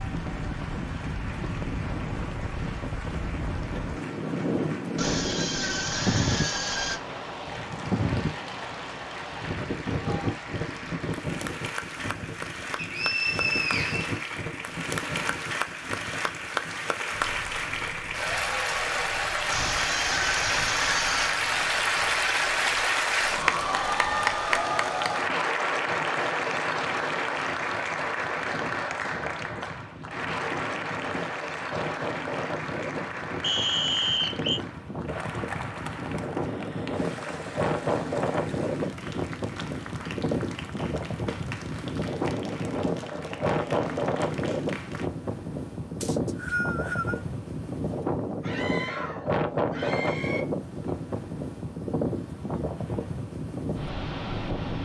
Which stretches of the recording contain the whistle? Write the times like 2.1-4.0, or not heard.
12.8-14.2, 33.4-34.6, 46.0-47.2.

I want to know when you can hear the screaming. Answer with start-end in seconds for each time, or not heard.
5.0-7.0, 19.4-21.4, 48.4-50.5.